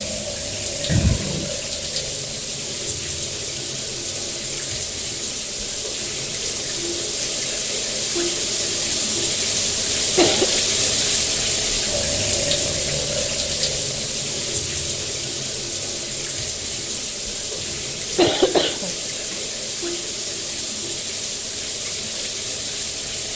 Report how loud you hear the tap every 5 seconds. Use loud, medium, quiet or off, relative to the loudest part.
medium, loud, loud, medium, medium.